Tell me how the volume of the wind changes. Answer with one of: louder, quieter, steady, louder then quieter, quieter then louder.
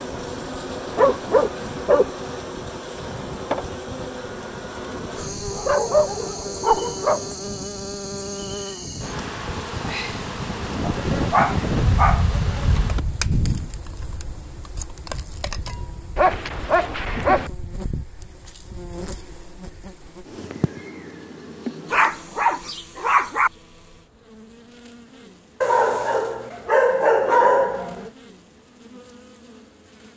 louder then quieter.